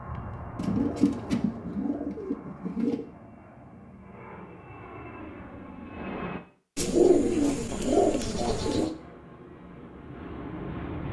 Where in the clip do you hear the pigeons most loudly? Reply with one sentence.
The loudest moment of the pigeons is at 7 seconds.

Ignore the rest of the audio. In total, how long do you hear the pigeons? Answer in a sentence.
The pigeons can be heard for 5 seconds in total.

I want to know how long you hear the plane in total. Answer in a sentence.
You can hear the plane for 9 seconds altogether.